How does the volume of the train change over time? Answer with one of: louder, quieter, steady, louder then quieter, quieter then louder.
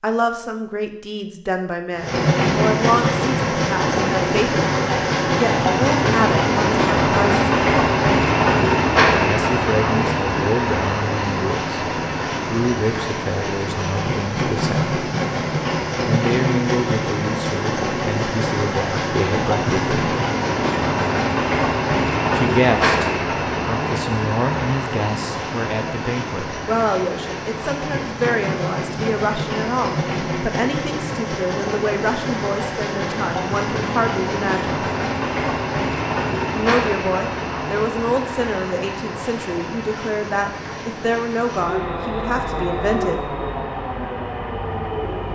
quieter.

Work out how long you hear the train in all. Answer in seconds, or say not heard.
43 s.